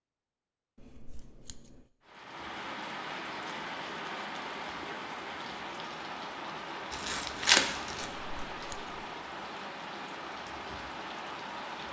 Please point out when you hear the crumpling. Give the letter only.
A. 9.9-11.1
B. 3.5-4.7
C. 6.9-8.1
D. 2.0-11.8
C.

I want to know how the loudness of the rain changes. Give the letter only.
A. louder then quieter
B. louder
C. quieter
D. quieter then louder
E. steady
E.